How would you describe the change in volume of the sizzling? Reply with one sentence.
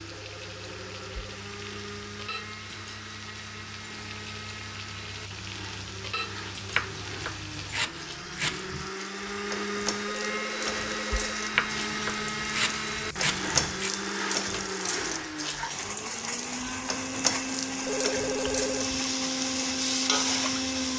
The loudness of the sizzling goes up.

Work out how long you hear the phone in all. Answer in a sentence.
You can hear the phone for 4 seconds altogether.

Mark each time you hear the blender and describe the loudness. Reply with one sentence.
The blender can be heard from 0.0 to 20.9 s, getting louder.